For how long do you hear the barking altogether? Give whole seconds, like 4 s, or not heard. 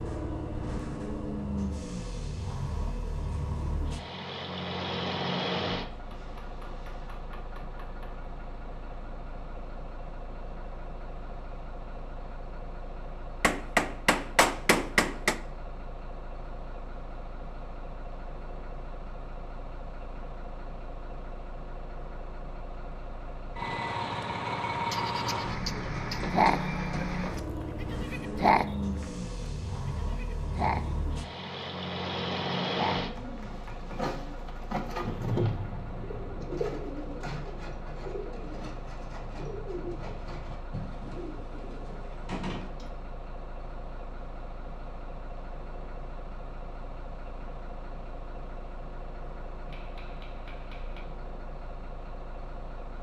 not heard.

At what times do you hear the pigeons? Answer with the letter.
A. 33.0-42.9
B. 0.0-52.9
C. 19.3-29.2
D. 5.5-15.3
A.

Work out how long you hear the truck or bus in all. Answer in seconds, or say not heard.
53 s.